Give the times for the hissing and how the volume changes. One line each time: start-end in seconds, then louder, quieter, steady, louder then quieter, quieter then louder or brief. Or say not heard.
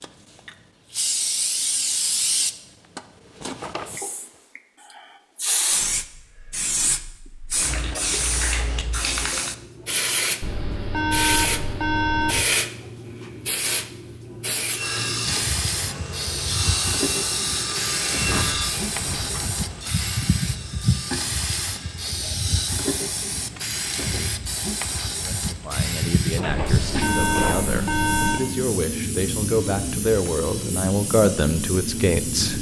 0.0-32.5 steady.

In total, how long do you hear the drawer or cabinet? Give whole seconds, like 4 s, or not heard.
3 s.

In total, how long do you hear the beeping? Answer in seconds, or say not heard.
4 s.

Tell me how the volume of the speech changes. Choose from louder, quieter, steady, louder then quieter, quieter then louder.
louder.